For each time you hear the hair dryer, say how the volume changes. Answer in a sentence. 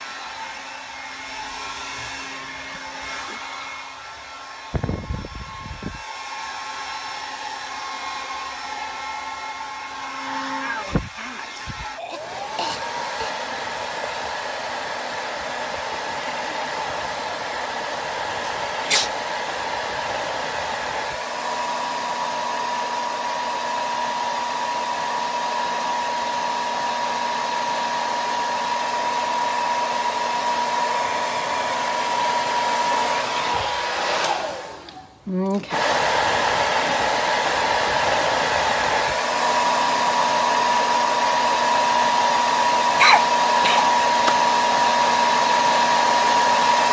The hair dryer can be heard from 0.0 to 46.8 s, getting louder.